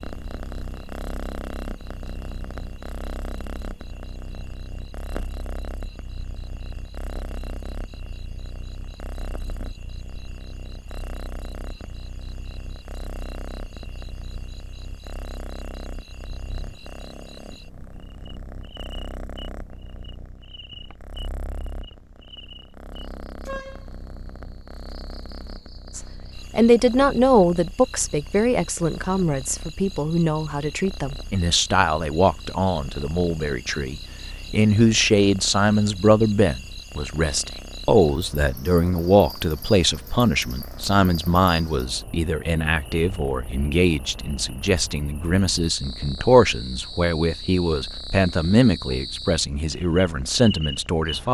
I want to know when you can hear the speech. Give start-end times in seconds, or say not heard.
25.9-51.2.